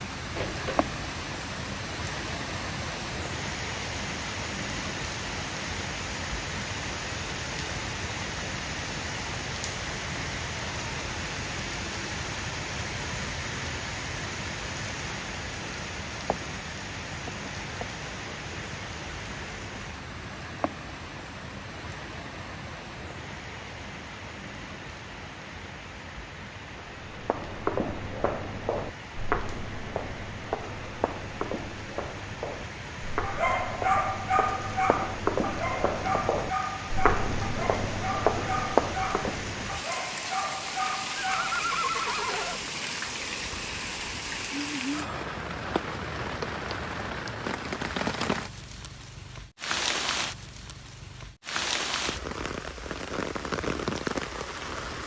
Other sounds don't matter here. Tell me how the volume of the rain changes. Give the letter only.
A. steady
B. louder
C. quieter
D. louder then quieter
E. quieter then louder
E.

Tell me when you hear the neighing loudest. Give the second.
42 s.